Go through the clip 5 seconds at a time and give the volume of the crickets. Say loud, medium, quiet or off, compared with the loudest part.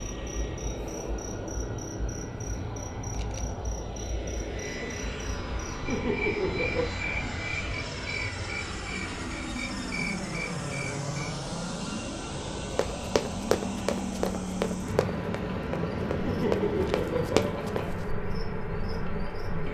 medium, loud, medium, loud.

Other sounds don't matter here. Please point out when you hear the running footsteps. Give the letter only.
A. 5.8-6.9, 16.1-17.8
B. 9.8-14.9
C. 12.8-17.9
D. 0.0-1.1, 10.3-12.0
C.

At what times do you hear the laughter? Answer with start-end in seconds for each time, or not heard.
5.8-6.9, 16.1-17.8.